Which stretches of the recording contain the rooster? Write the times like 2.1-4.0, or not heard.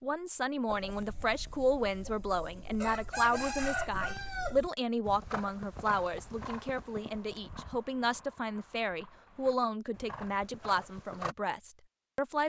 0.7-4.7.